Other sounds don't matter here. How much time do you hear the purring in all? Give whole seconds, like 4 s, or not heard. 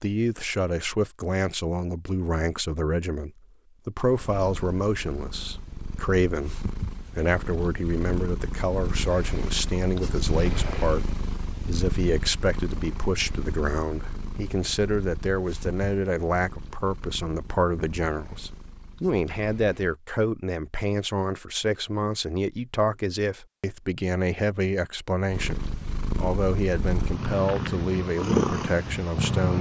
20 s.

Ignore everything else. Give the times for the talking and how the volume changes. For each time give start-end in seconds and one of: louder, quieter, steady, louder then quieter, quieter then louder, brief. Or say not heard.
0.0-29.5 steady.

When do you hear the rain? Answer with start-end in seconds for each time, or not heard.
not heard.